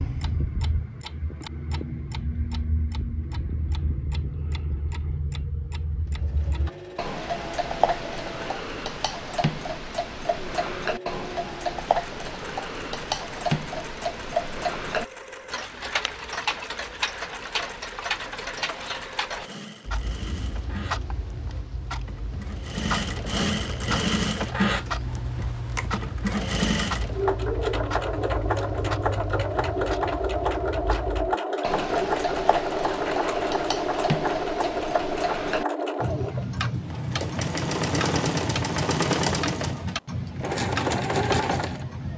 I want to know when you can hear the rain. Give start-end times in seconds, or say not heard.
not heard.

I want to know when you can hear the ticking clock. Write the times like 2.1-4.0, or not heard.
0.0-42.1.